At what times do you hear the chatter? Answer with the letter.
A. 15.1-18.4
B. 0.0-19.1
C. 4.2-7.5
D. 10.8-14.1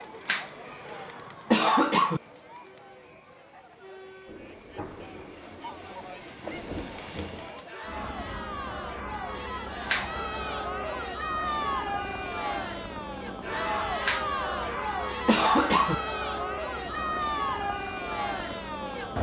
B.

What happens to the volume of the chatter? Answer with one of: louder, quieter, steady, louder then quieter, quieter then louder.
louder.